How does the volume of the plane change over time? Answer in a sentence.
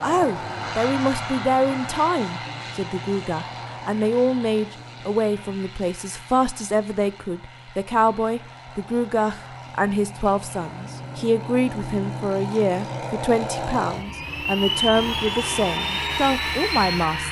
The volume of the plane goes down, then up.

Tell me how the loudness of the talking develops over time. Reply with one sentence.
The loudness of the talking stays about the same.